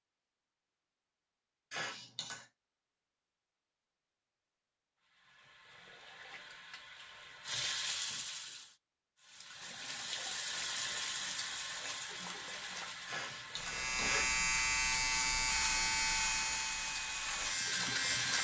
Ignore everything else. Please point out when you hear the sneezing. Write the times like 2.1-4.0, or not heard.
1.7-2.5, 13.1-14.3.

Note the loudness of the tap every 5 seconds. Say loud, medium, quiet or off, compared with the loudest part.
off, loud, loud, loud.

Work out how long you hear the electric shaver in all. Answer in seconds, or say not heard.
5 s.